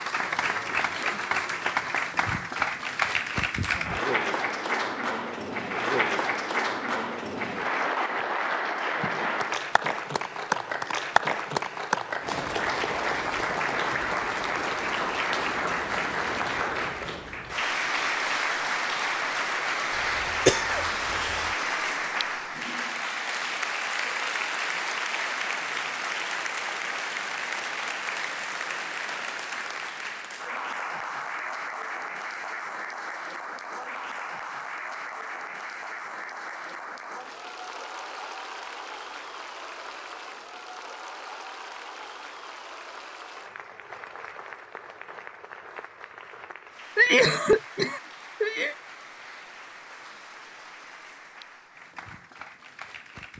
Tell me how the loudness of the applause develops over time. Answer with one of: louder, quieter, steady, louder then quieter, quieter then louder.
quieter.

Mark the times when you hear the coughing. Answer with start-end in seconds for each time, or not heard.
19.9-21.5, 47.0-48.8.